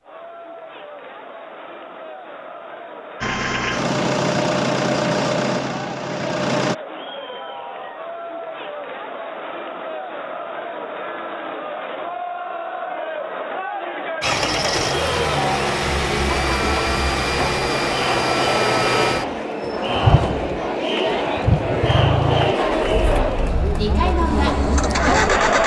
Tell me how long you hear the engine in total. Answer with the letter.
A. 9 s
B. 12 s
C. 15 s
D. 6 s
C.